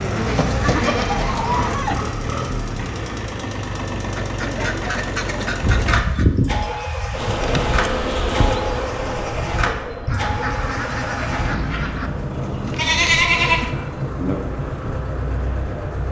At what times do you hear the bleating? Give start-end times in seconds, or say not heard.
0.3-2.0, 5.6-7.3, 12.4-13.7.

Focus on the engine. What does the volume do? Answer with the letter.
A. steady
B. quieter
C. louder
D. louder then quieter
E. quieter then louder
A.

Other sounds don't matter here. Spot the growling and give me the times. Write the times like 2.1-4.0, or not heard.
not heard.